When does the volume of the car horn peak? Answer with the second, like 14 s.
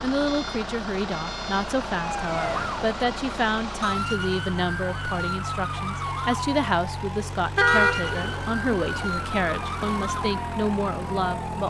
8 s.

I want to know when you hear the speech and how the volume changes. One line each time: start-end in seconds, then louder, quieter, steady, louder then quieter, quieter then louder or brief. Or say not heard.
0.0-11.6 steady.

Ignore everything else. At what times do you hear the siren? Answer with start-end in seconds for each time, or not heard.
1.9-11.6.